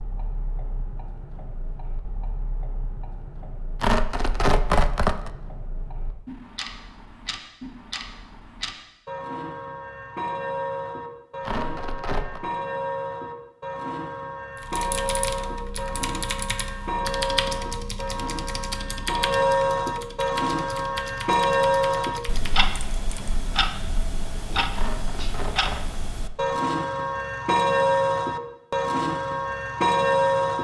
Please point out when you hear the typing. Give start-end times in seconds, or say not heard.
14.6-23.4.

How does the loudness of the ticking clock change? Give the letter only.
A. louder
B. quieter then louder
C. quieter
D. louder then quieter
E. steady
A.